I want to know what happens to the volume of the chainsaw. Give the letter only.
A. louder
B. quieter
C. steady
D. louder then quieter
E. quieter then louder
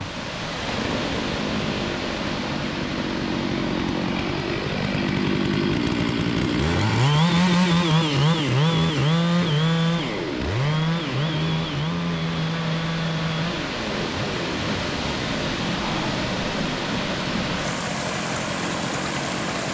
D.